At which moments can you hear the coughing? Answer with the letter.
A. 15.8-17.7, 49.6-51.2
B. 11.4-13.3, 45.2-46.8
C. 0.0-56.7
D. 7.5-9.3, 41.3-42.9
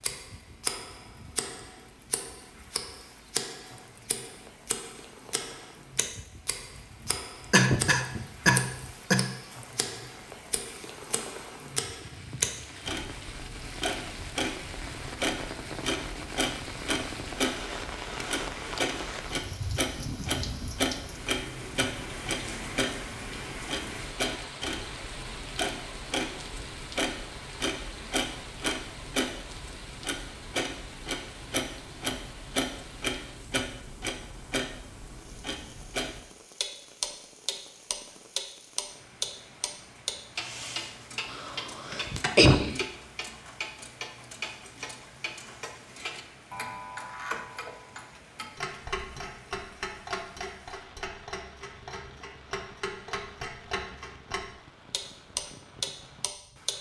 D.